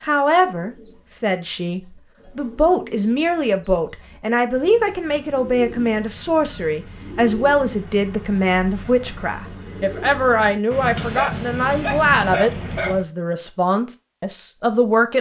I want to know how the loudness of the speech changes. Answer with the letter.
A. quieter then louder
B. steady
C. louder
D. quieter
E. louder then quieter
B.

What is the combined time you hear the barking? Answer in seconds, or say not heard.
2 s.